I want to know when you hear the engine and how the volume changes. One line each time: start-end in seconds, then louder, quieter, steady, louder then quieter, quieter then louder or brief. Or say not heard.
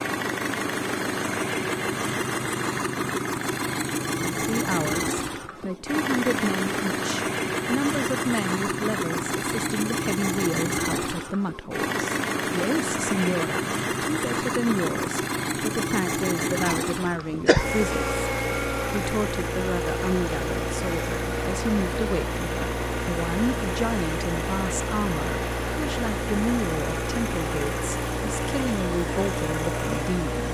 0.0-30.4 steady.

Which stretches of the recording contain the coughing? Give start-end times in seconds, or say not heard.
16.6-17.7.